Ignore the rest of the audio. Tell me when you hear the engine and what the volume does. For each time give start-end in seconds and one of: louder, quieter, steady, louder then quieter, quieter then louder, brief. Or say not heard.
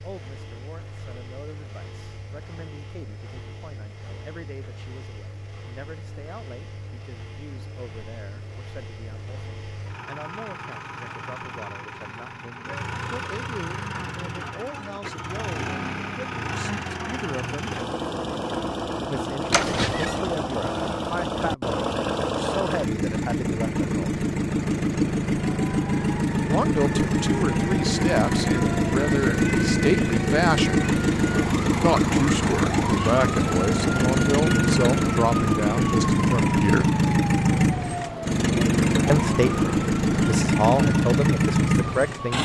0.0-42.3 louder.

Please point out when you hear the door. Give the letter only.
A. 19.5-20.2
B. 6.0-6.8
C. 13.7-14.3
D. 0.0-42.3
A.